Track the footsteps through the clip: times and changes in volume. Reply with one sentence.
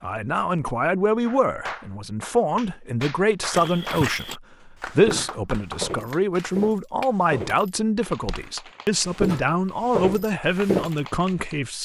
The footsteps can be heard from 3.5 to 8.4 s, at a steady volume; and briefly from 9.1 to 10.9 s.